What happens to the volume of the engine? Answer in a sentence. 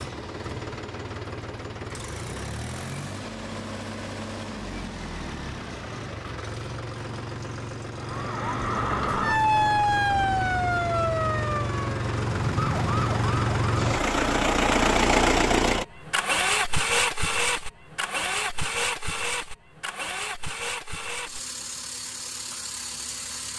The volume of the engine goes up, then down.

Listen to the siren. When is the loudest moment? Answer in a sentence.
The volume of the siren peaks at 10 seconds.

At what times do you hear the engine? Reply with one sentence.
The engine can be heard from 0.0 to 23.5 s.